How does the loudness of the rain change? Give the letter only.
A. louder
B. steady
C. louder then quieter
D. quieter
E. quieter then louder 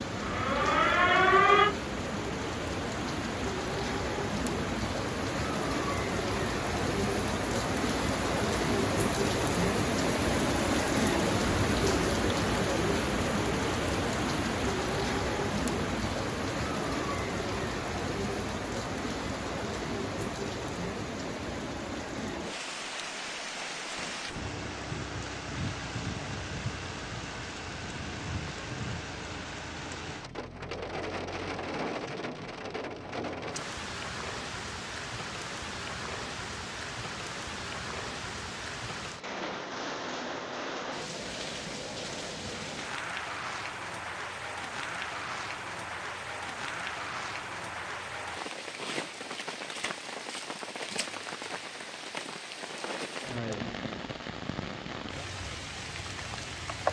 D.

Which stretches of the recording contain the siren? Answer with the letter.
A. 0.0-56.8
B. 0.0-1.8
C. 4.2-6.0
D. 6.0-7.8
B.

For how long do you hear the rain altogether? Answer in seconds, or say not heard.
57 s.